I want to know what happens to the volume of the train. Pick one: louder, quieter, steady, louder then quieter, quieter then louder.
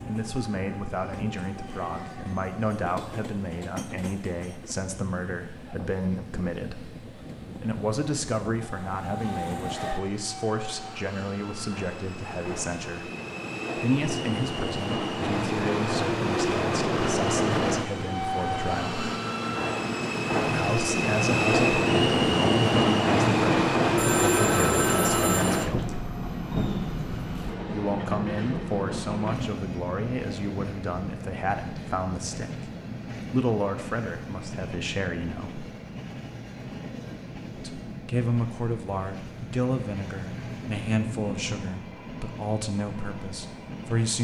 louder then quieter.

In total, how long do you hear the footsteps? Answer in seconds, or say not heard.
not heard.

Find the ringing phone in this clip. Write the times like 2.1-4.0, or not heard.
23.9-25.6.